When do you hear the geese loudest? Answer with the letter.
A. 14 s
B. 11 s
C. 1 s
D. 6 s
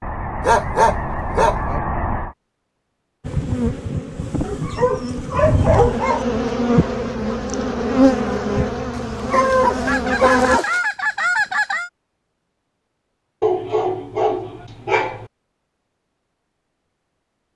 B.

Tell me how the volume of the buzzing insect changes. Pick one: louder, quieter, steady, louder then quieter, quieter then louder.
louder then quieter.